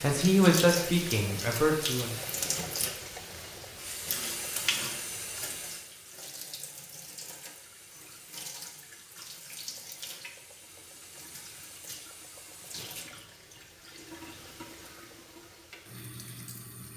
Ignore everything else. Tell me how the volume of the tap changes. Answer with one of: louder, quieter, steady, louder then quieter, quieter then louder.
quieter.